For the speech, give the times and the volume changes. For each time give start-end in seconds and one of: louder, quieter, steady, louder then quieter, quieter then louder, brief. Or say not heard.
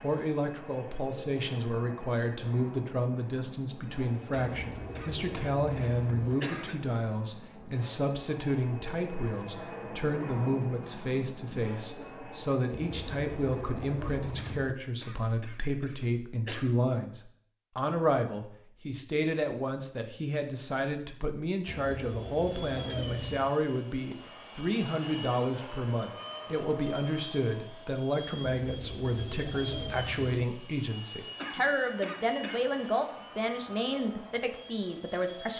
0.0-35.5 steady.